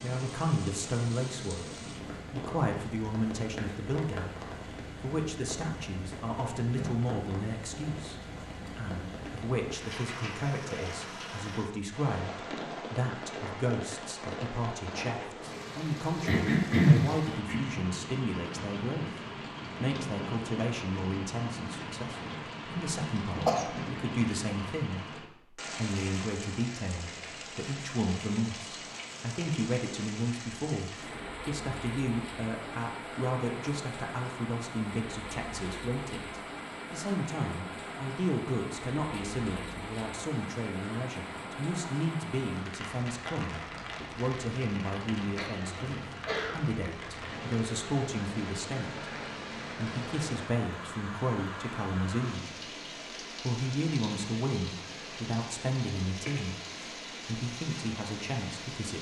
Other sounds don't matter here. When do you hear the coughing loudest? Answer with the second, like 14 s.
17 s.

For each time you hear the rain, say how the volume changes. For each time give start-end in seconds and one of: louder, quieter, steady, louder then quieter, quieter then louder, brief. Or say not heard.
0.0-58.9 steady.